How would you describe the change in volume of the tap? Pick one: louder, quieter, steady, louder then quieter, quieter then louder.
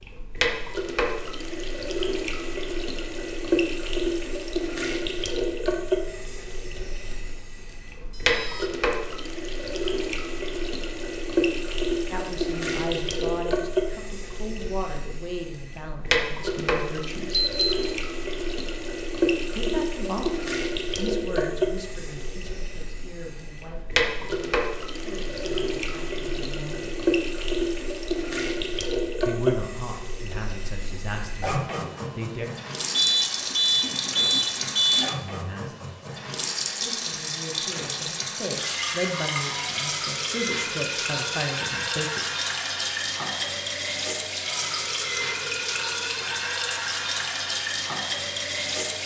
steady.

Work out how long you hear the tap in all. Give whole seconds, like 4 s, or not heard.
49 s.